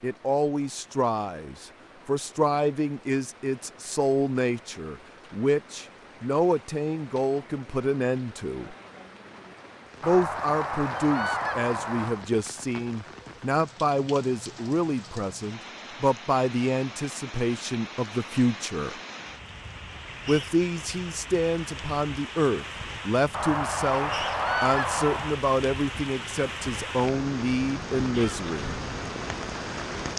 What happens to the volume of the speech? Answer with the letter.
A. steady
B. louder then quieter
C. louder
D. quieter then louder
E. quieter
A.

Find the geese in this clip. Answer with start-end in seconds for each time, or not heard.
10.0-12.2, 23.3-25.4.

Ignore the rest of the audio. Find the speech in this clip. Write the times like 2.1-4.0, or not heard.
0.0-8.8, 10.0-18.9, 20.2-28.8.